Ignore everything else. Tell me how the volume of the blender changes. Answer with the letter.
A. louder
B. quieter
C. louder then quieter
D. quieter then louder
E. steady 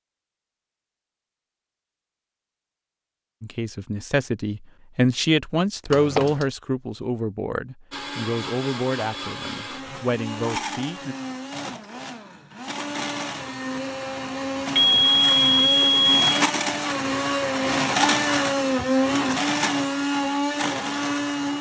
A.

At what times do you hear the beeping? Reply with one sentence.
The beeping can be heard from 5.9 to 6.5 s and from 14.8 to 16.4 s.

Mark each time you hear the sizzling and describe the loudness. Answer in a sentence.
The sizzling can't be heard in this clip.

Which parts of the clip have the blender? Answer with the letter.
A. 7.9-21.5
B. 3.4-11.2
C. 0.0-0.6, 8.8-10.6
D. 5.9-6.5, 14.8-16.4
A.